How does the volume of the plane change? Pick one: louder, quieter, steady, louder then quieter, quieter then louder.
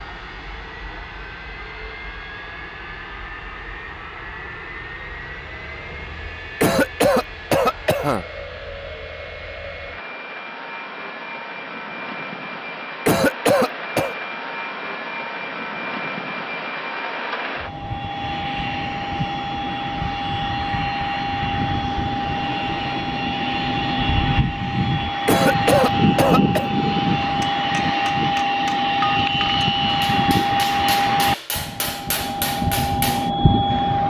louder.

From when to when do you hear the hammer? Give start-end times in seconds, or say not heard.
27.2-33.3.